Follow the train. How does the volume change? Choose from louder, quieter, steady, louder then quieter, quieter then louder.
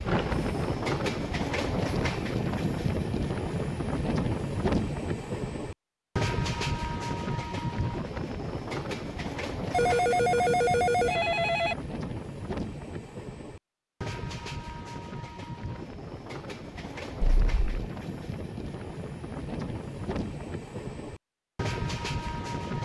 quieter.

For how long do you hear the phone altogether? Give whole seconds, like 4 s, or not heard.
3 s.